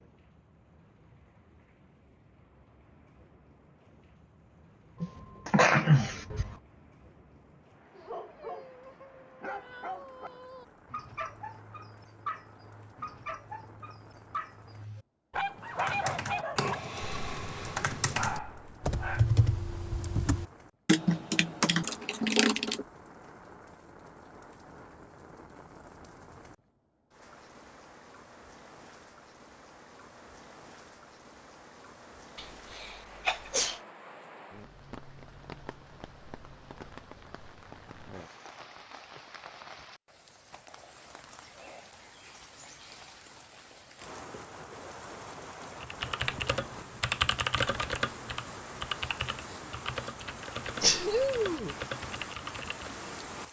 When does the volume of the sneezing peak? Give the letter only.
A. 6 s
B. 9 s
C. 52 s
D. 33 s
A.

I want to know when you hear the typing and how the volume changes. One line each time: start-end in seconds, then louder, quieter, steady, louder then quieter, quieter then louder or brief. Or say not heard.
15.7-22.9 louder
45.8-53.0 quieter.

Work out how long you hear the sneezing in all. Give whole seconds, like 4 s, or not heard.
4 s.